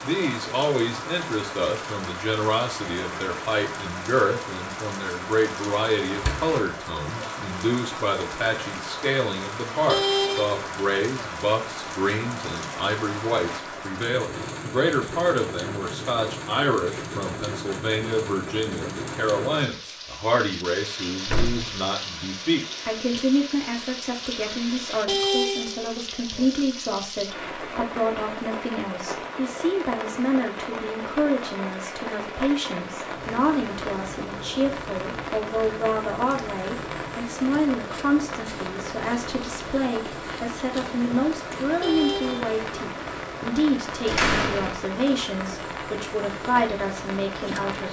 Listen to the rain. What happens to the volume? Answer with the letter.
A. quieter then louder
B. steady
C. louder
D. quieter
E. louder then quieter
B.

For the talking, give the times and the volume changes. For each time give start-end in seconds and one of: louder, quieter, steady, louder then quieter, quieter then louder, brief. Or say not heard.
0.0-47.8 steady.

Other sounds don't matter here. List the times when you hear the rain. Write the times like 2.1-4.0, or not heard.
0.0-47.8.